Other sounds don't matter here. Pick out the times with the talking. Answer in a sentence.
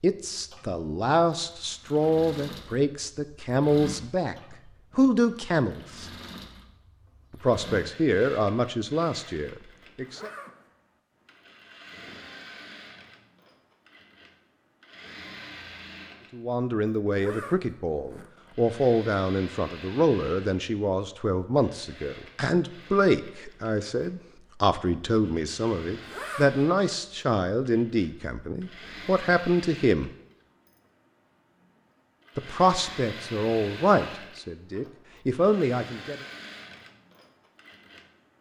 The talking can be heard from 0.0 to 6.0 s, from 7.3 to 10.3 s, from 16.3 to 30.1 s and from 32.4 to 36.1 s.